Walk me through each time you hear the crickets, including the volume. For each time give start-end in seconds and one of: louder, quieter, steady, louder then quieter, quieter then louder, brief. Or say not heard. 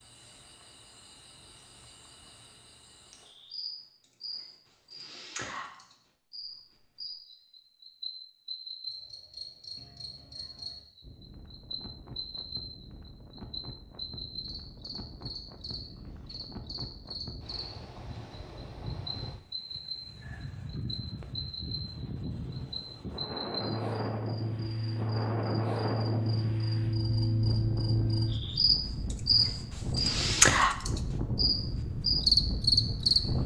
0.0-33.2 louder.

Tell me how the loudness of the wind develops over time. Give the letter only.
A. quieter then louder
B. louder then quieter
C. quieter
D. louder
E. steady
D.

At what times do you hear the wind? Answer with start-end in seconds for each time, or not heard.
11.0-33.4.